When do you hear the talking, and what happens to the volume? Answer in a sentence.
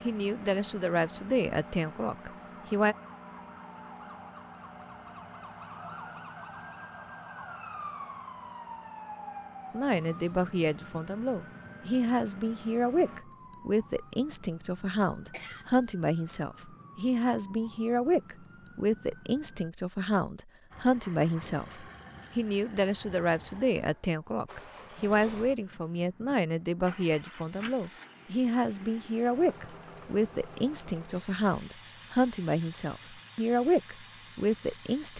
You can hear the talking briefly from 0.0 to 3.0 s; and from 9.7 to 35.1 s, at a steady volume.